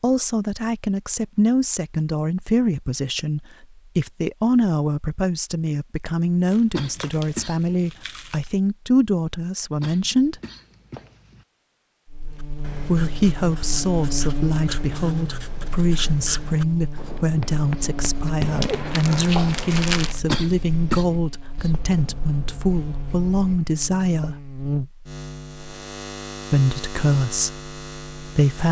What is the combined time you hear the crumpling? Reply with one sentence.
The crumpling can be heard for 4 seconds in total.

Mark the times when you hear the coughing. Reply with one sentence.
You can hear the coughing from 6.7 to 7.8 s, from 9.8 to 11.4 s and from 20.2 to 21.1 s.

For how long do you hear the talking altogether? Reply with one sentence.
The talking can be heard for 24 seconds in total.